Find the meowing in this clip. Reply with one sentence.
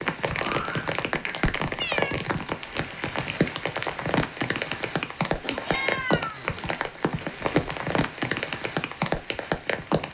You can hear the meowing from 1.8 to 2.2 s and from 5.7 to 6.5 s.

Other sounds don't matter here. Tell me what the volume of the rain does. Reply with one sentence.
The volume of the rain stays about the same.